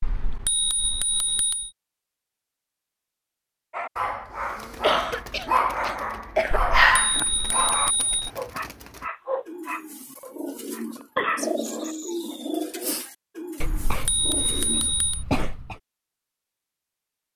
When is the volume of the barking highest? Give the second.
7 s.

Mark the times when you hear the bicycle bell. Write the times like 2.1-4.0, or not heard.
0.0-1.7, 6.5-8.3, 13.6-15.2.